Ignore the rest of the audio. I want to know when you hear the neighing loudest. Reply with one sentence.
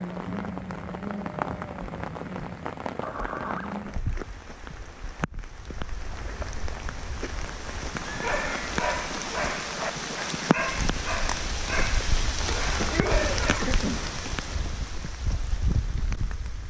The volume of the neighing peaks at 13 seconds.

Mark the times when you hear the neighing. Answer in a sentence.
The neighing can be heard from 3.0 to 3.8 s, from 8.1 to 8.8 s and from 12.8 to 14.1 s.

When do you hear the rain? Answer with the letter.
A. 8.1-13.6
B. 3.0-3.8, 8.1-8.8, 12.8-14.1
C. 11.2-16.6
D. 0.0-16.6
D.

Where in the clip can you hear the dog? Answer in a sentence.
You can hear the dog from 8.1 to 13.6 s.